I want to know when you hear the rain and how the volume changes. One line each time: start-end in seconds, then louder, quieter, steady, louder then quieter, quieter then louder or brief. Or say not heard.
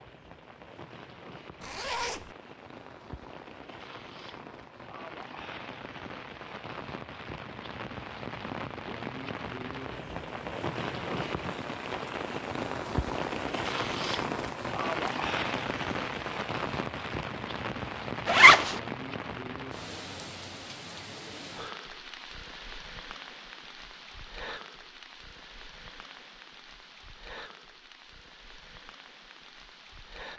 0.0-30.3 louder then quieter.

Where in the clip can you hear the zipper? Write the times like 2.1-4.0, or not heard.
1.6-2.3, 18.2-18.8.